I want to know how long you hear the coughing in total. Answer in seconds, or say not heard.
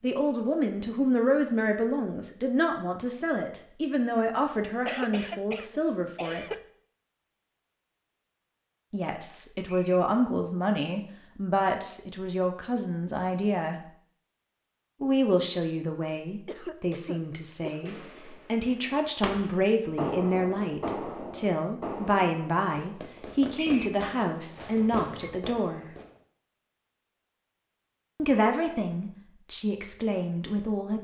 4 s.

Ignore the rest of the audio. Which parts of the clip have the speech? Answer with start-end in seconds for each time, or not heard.
0.0-6.5, 8.9-13.8, 15.0-25.9, 28.1-30.9.